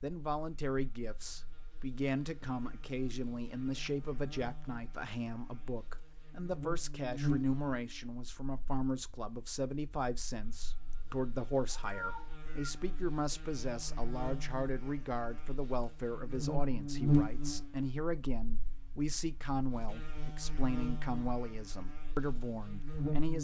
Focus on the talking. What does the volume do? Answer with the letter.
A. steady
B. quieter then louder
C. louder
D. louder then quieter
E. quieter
A.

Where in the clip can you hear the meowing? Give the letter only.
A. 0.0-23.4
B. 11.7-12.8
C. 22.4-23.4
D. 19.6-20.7
B.